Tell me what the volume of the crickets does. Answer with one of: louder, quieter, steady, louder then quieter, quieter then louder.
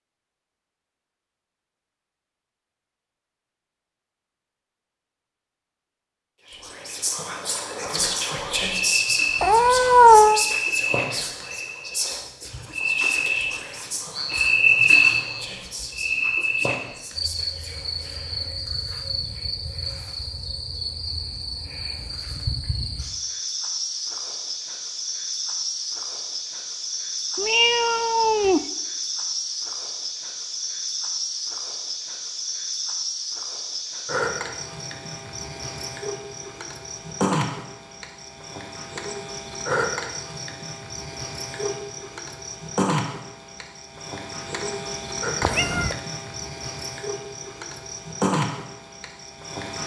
quieter.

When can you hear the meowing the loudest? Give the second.
10 s.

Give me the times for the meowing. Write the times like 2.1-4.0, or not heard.
9.4-10.4, 27.4-28.6, 45.4-46.0.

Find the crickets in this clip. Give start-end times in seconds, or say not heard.
8.7-49.8.